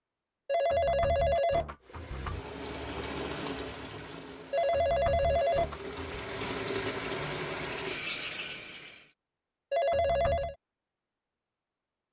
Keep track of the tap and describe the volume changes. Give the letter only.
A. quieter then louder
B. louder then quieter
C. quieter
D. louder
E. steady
A.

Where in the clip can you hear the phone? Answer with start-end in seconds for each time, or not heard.
0.5-2.4, 4.5-6.2, 9.7-10.6.